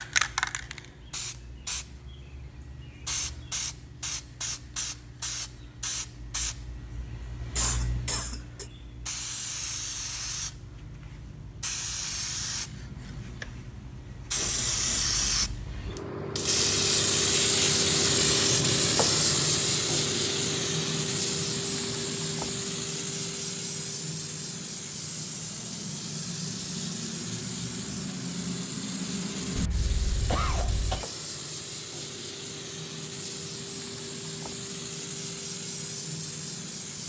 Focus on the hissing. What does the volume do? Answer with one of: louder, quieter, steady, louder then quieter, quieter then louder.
louder then quieter.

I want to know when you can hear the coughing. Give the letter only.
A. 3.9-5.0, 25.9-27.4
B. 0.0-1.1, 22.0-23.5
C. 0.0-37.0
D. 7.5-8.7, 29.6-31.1
D.